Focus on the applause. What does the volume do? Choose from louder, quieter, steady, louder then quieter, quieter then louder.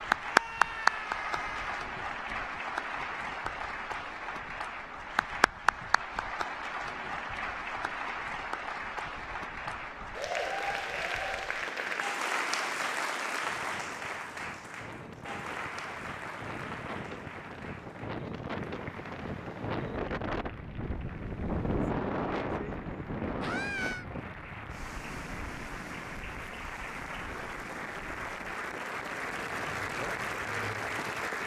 quieter then louder.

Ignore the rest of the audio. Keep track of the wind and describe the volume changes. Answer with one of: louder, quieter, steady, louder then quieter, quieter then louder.
louder then quieter.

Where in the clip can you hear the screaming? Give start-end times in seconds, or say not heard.
0.2-1.9, 23.4-24.1.